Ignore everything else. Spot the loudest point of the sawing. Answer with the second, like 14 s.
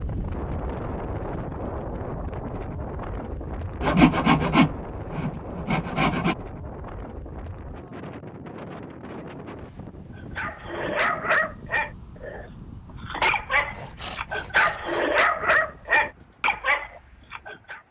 4 s.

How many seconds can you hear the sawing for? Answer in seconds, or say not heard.
4 s.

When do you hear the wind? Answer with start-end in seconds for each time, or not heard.
0.0-17.8.